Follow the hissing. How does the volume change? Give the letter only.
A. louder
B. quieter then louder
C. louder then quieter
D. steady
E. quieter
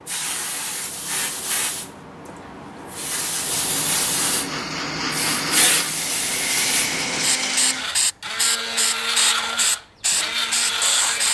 A.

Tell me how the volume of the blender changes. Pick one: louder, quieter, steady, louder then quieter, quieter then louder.
steady.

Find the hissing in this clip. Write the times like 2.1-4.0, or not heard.
0.0-11.2.